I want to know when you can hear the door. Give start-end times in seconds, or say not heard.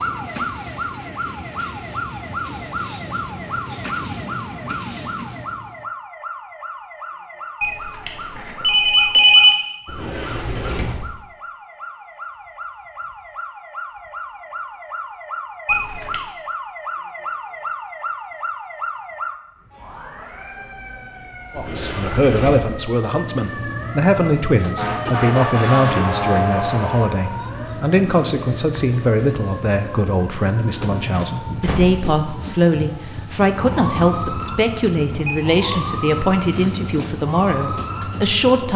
9.8-11.2, 21.6-22.8, 31.1-32.6.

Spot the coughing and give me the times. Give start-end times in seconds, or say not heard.
not heard.